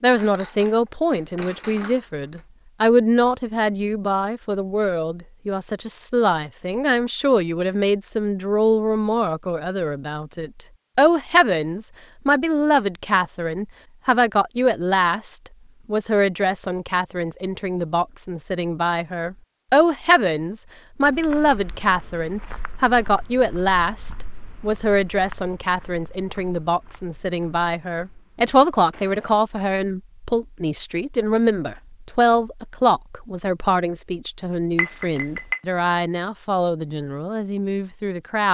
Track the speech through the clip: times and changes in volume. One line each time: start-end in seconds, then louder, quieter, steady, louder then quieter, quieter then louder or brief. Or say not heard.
0.0-38.4 steady.